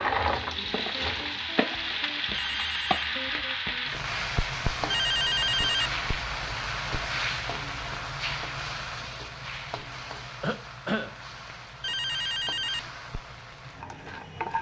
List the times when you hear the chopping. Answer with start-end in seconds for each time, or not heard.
not heard.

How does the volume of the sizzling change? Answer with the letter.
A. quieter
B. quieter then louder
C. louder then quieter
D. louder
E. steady
A.